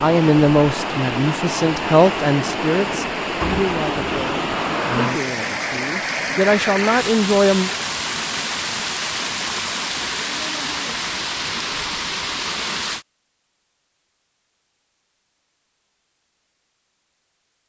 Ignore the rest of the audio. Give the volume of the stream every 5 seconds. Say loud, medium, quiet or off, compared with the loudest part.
loud, loud, loud, off.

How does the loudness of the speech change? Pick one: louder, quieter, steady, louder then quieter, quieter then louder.
quieter then louder.